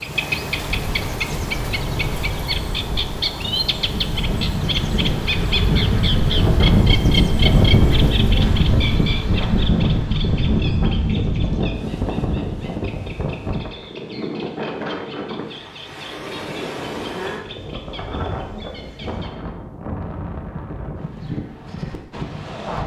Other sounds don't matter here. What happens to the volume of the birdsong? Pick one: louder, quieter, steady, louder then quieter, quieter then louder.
quieter.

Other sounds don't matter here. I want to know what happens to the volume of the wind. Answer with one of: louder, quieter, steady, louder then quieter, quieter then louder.
louder then quieter.